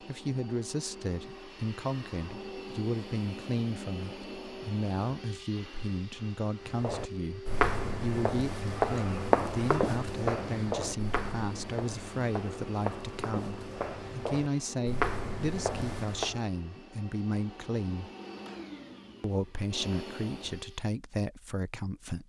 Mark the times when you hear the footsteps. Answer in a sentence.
You can hear the footsteps from 6.7 to 16.4 s.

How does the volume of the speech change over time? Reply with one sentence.
The loudness of the speech stays about the same.